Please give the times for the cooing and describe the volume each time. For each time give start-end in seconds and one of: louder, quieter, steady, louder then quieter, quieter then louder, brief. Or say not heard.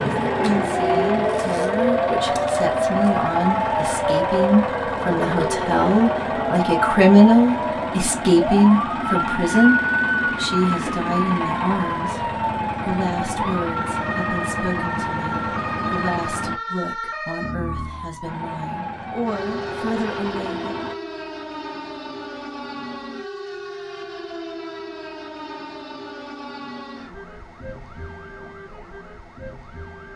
not heard.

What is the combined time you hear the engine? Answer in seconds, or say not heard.
19 s.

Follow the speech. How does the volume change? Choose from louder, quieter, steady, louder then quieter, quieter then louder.
louder then quieter.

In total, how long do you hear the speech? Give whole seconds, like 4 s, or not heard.
21 s.